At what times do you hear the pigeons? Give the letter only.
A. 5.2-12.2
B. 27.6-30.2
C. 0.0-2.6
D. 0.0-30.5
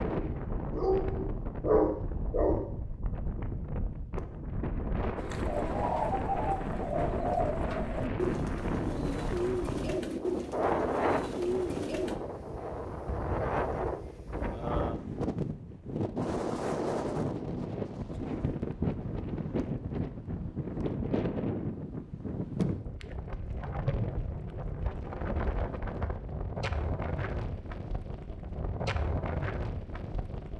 A.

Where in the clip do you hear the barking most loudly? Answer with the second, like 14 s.
2 s.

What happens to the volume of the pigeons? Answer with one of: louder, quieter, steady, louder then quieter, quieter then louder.
steady.